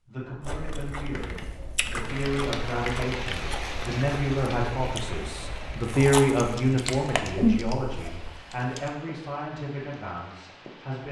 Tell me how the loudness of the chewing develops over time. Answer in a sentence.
The loudness of the chewing goes up.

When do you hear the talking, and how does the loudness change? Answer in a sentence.
The talking can be heard from 0.1 to 11.0 s, getting louder then quieter.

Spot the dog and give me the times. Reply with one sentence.
The dog can't be heard in this clip.